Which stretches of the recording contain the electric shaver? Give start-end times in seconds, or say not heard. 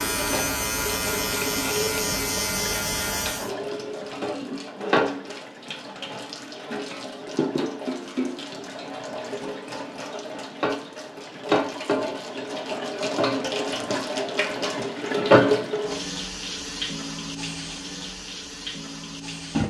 0.0-3.5.